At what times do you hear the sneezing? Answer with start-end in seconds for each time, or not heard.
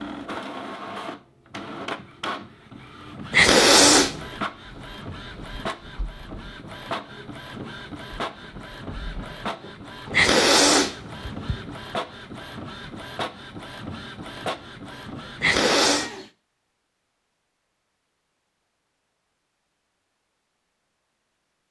3.3-4.2, 10.1-11.6, 15.4-16.1.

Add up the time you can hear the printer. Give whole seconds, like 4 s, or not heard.
16 s.